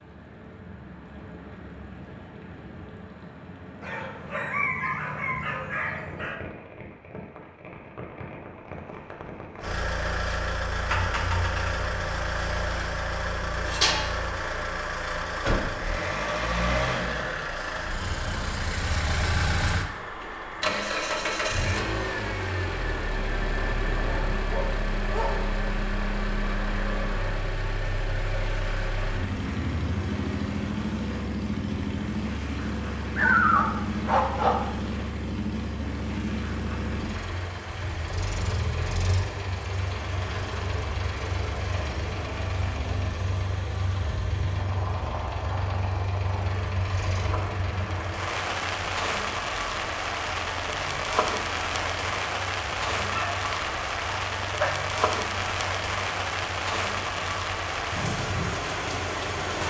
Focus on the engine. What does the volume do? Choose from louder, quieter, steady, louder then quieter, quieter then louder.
quieter.